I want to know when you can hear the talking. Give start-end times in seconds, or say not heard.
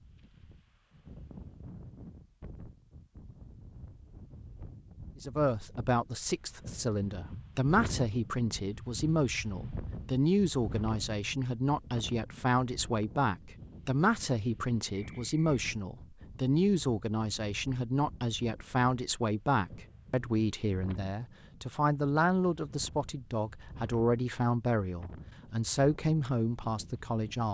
5.2-27.4.